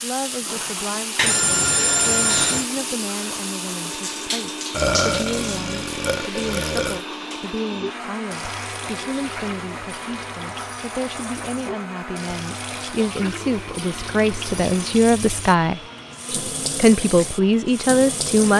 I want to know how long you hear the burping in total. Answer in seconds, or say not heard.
2 s.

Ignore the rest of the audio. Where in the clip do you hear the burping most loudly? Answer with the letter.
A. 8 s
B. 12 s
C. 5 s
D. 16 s
C.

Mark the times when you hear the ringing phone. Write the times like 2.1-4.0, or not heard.
1.1-2.6.